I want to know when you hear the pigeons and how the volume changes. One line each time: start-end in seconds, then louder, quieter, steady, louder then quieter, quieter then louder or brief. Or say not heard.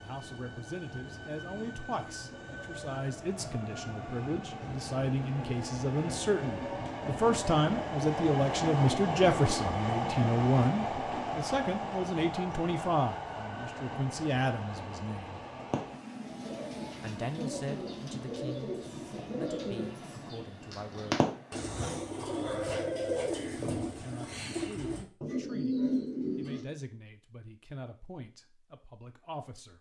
15.7-26.6 louder.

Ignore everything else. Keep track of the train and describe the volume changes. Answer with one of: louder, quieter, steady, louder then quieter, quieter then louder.
louder then quieter.